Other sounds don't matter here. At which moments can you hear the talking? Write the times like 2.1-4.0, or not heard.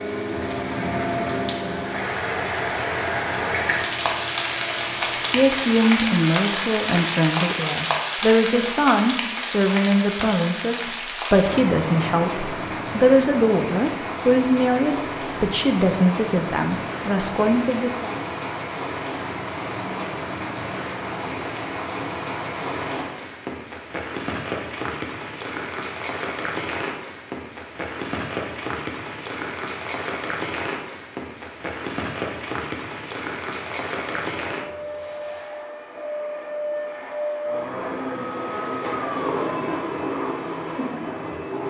5.2-18.1.